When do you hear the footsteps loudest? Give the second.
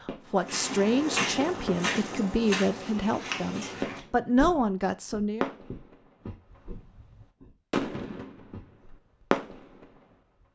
1 s.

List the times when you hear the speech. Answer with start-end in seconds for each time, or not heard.
0.0-5.5.